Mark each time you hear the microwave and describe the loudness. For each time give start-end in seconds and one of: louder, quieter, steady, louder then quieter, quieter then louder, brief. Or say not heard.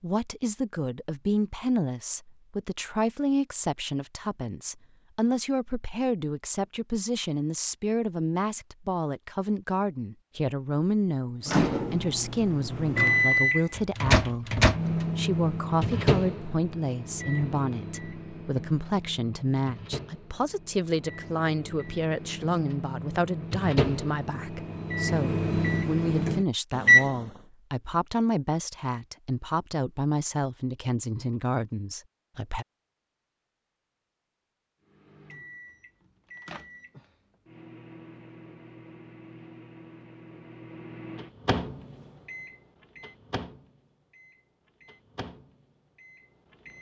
11.4-27.1 quieter then louder
34.9-46.7 louder then quieter.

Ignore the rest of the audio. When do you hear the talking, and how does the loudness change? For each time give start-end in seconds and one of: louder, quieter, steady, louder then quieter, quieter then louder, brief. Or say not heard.
0.0-32.6 steady.